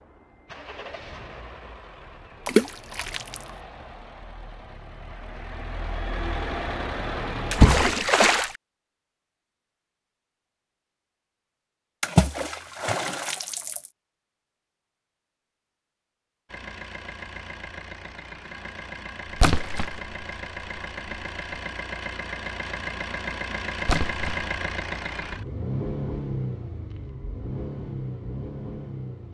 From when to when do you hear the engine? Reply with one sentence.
The engine can be heard from 0.0 to 7.7 s and from 16.4 to 29.2 s.